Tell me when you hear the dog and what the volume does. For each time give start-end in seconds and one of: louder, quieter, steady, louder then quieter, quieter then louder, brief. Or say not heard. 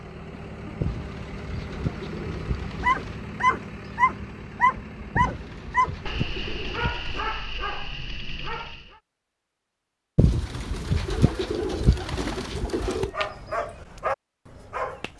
2.8-8.9 quieter
12.8-15.1 brief.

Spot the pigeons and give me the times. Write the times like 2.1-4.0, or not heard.
0.8-3.2, 5.2-7.3, 10.2-13.1.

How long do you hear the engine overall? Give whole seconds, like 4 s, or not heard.
7 s.